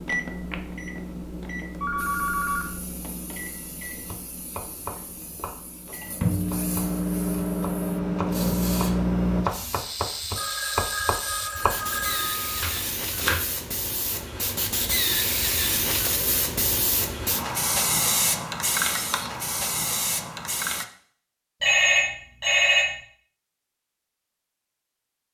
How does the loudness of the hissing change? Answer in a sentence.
The loudness of the hissing goes up.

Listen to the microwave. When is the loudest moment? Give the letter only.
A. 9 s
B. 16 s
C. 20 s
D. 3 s
A.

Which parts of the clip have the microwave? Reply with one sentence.
You can hear the microwave from 0.0 to 9.5 s.